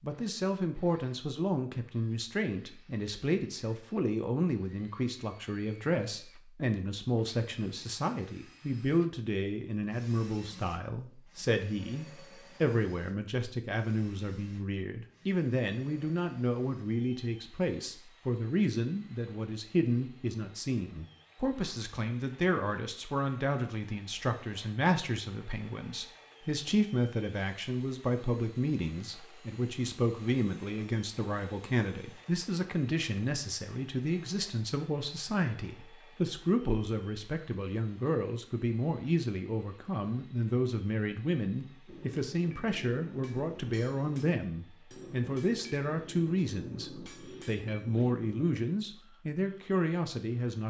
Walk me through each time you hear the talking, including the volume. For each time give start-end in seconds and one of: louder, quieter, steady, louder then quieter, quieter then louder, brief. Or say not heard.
0.0-50.6 steady.